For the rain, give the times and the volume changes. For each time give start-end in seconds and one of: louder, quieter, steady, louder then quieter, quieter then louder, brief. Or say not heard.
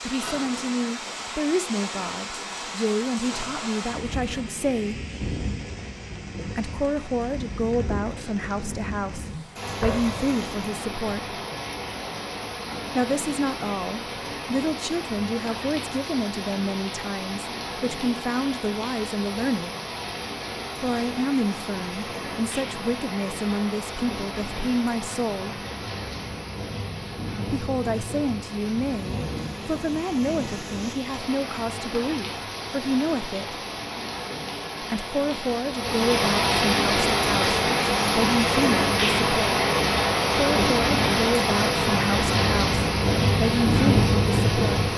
0.0-44.9 louder.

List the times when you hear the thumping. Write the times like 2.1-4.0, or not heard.
9.8-10.4.